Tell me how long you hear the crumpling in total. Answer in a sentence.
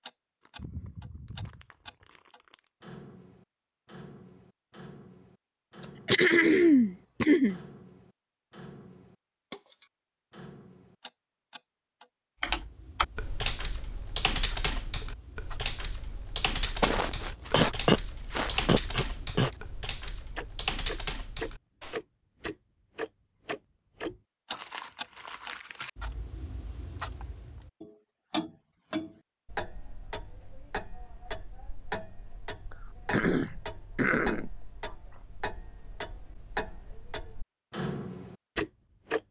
You can hear the crumpling for 4 seconds altogether.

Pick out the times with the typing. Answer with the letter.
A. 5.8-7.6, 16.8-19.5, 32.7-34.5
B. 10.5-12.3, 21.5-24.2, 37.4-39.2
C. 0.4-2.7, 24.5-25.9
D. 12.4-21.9
D.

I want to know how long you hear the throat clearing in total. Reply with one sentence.
The throat clearing can be heard for 6 seconds in total.